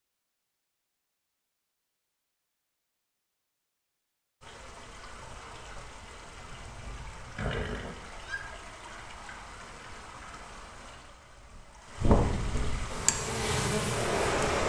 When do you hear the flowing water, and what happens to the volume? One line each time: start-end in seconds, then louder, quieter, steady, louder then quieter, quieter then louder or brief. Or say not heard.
4.4-14.6 louder.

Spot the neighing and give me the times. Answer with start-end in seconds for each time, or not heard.
7.3-8.3.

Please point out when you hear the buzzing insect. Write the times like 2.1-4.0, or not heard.
12.8-14.6.